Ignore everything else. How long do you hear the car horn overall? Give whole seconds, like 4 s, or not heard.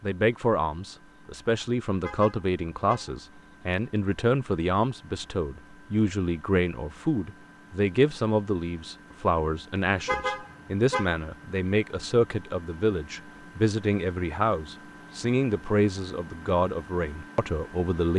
2 s.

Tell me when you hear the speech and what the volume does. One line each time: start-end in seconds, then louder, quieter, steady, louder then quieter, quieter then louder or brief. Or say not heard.
0.0-18.1 steady.